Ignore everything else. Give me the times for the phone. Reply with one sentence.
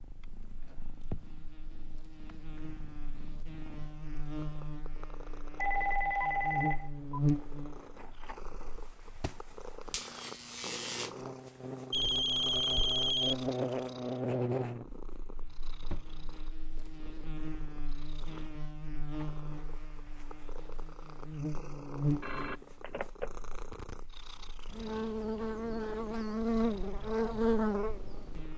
The phone can be heard from 5.5 to 7.3 s, from 11.9 to 13.5 s and from 22.0 to 23.9 s.